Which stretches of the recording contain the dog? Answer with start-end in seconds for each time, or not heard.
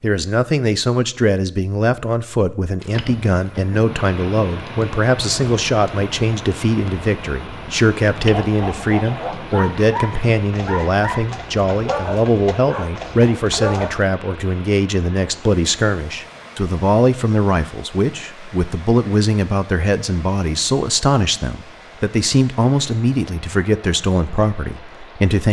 8.2-14.0.